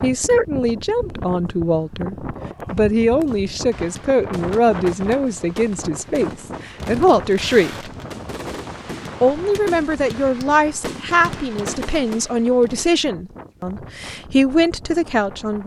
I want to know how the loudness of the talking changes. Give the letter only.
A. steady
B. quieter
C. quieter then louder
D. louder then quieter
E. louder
A.